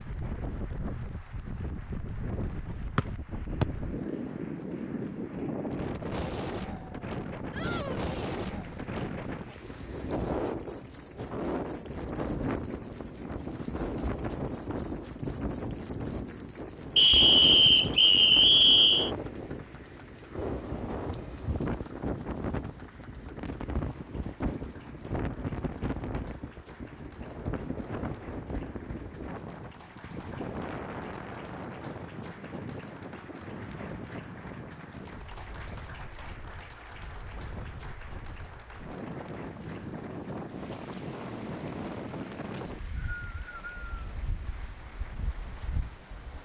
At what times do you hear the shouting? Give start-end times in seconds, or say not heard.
7.5-8.3.